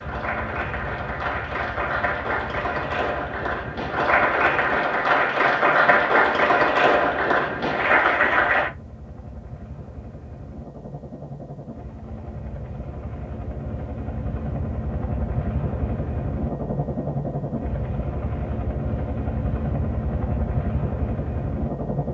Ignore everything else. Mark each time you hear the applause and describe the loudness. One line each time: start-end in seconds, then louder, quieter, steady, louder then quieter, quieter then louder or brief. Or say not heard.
0.0-8.7 louder.